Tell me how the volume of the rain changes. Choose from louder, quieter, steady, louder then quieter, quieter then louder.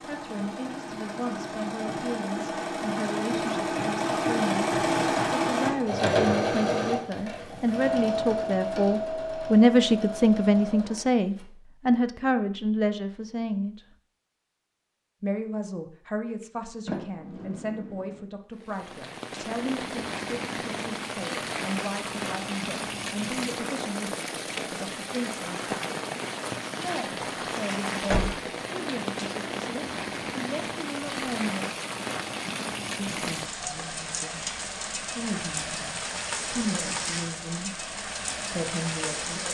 steady.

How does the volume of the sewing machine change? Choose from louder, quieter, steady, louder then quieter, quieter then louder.
louder then quieter.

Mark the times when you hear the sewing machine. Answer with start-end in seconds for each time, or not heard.
0.0-11.4.